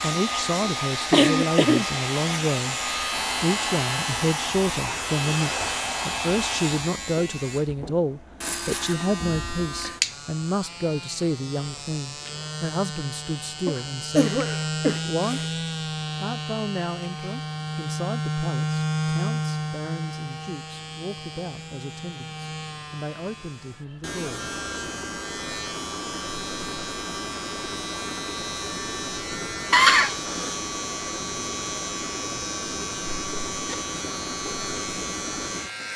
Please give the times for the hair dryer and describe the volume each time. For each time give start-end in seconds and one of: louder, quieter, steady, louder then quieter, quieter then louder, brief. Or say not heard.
0.0-7.0 steady.